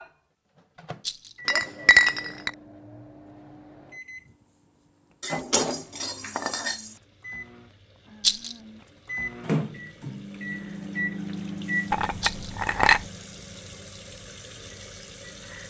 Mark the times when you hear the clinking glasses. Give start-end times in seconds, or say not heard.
1.4-2.5, 5.2-7.0, 11.9-13.1.